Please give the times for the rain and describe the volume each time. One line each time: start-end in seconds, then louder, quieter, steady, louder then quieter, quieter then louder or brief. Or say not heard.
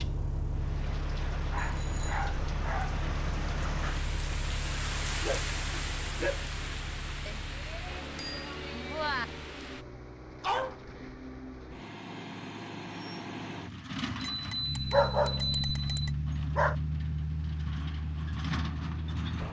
0.0-9.8 louder then quieter.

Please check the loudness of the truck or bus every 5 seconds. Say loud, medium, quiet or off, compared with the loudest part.
medium, medium, medium, loud.